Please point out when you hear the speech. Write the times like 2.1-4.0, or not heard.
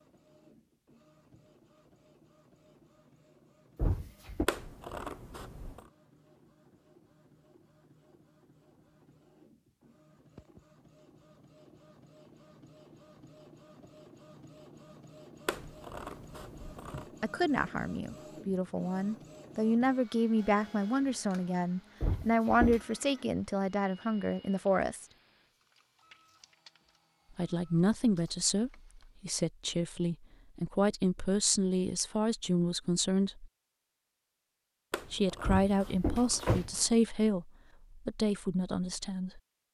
17.2-25.1, 27.4-33.5, 35.1-39.4.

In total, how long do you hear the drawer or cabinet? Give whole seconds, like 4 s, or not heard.
3 s.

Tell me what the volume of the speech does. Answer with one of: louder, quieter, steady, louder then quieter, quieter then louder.
steady.